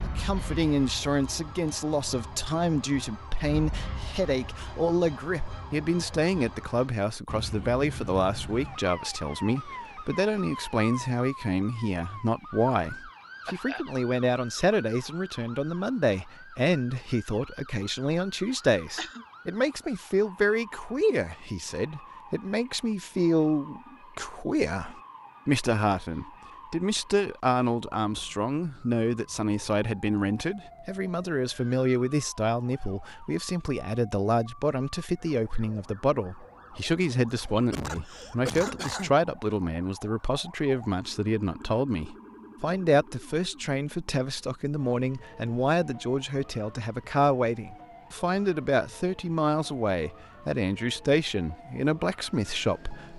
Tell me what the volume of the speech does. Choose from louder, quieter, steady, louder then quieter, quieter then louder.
steady.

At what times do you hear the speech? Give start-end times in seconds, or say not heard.
0.0-53.1.